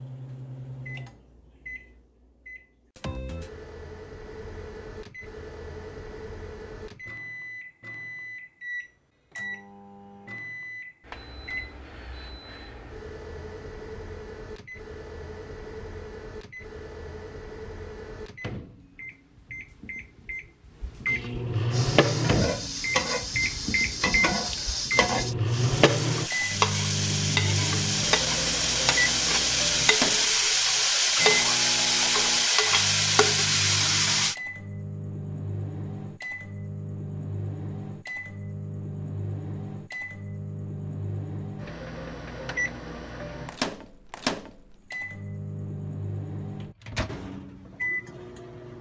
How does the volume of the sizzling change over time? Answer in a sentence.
The volume of the sizzling goes up.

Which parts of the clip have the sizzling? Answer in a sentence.
You can hear the sizzling from 21.7 to 34.4 s.